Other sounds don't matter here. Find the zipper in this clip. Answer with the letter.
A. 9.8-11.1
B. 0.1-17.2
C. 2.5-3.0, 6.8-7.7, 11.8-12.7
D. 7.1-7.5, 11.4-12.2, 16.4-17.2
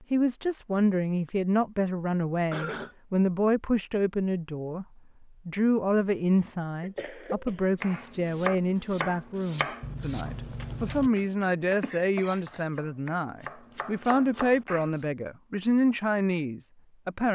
A.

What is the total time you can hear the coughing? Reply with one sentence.
You can hear the coughing for 2 seconds altogether.